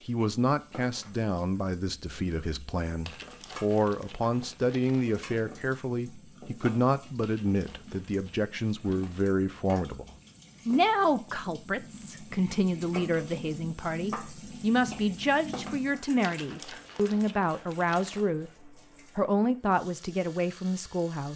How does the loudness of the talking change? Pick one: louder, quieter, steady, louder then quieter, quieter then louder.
steady.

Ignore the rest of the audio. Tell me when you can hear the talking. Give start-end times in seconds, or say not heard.
0.1-10.1, 10.7-21.3.